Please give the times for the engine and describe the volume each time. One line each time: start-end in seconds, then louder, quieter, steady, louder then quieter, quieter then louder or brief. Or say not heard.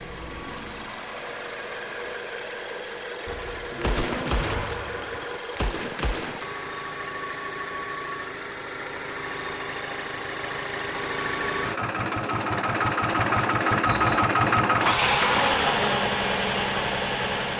0.0-17.5 louder.